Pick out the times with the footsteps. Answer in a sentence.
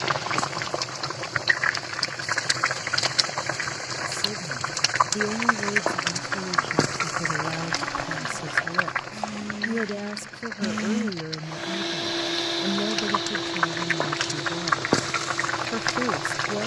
The footsteps can't be heard in this clip.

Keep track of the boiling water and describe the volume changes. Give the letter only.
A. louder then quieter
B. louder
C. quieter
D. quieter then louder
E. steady
D.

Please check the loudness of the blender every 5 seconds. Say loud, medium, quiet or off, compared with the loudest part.
off, medium, loud, medium.